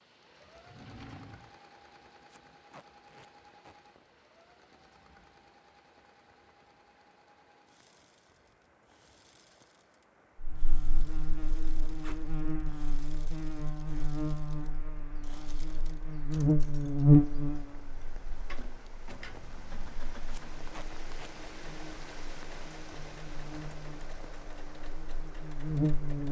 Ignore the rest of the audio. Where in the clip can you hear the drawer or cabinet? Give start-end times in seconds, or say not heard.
0.7-1.6, 18.4-19.6.